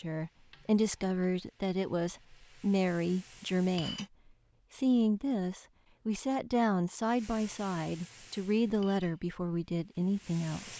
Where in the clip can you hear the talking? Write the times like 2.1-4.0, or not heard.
0.0-4.0, 4.7-10.7.